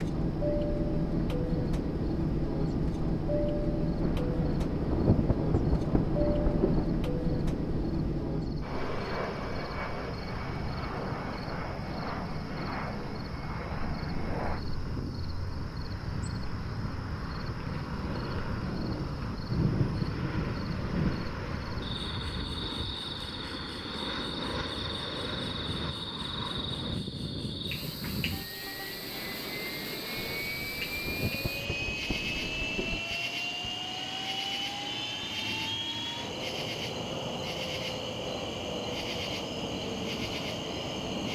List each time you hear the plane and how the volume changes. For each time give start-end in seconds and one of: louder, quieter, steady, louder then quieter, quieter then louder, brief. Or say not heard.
0.0-41.3 quieter.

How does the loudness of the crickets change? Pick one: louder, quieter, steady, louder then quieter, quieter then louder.
louder.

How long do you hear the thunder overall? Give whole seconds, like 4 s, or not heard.
9 s.